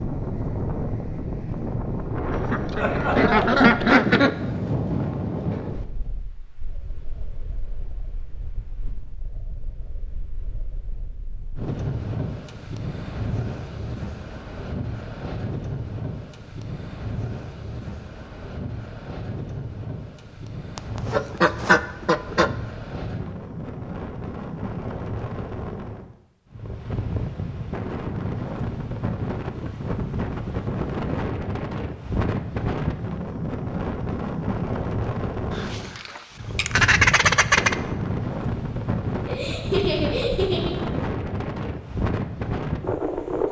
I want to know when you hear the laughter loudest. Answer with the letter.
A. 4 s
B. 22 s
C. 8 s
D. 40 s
D.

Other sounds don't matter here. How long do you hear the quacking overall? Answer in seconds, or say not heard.
6 s.